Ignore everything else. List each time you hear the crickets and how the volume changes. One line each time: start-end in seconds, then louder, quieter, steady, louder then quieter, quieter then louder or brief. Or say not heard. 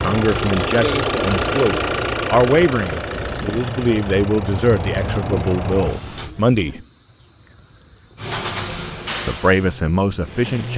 0.0-10.7 louder.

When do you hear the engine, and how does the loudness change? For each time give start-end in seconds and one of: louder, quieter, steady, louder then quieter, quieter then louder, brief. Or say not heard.
0.0-6.3 quieter
8.2-10.7 brief.